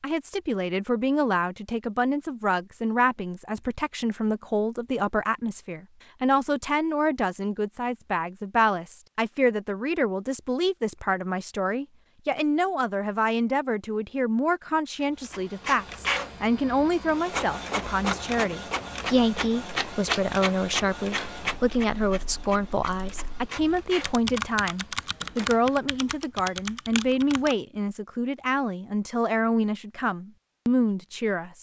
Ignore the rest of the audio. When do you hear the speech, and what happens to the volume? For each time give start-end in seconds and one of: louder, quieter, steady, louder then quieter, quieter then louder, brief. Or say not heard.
0.0-31.5 steady.